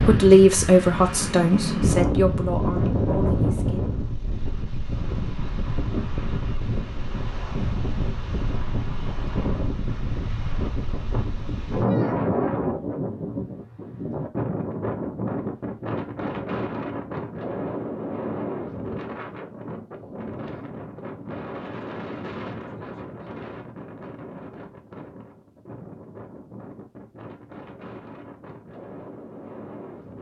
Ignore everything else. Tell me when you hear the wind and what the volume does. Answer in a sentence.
You can hear the wind from 0.0 to 30.1 s, getting quieter.